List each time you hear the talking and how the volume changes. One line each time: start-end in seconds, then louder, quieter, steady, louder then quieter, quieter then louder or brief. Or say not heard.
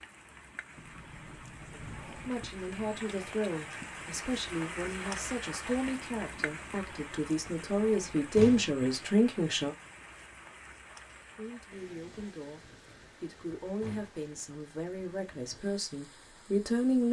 2.2-9.8 louder
11.3-17.0 louder.